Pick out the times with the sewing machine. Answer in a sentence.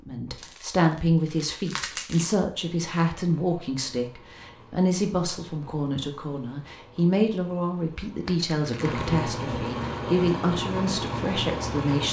The sewing machine can be heard from 2.5 to 12.0 s.